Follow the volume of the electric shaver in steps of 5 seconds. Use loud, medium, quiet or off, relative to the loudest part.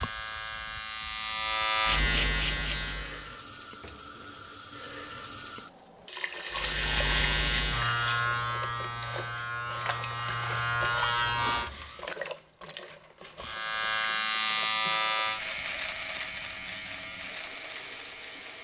loud, loud, loud, medium.